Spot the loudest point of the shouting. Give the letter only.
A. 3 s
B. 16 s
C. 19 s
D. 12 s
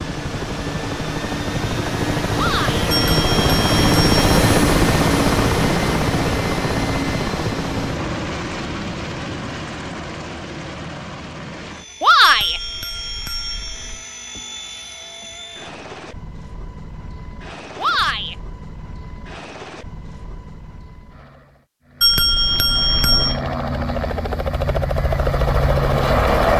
D.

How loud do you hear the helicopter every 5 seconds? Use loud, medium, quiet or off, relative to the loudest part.
loud, loud, quiet, quiet, medium, loud.